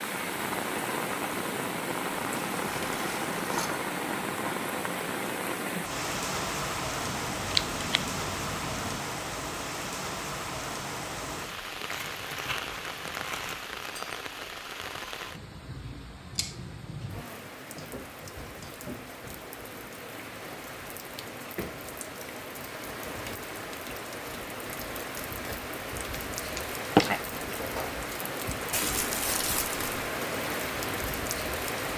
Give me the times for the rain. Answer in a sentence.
The rain can be heard from 0.0 to 31.9 s.